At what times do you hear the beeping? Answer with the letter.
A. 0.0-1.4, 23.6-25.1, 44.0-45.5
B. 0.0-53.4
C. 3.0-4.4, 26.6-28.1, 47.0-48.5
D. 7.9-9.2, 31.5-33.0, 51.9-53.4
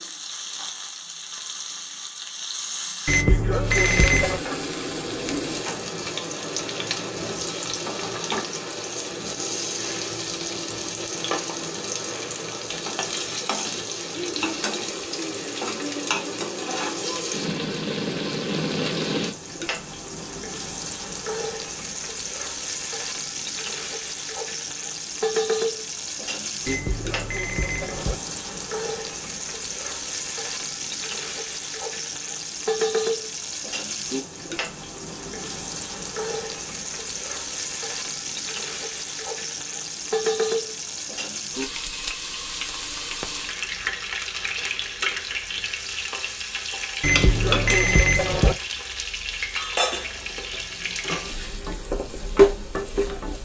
C.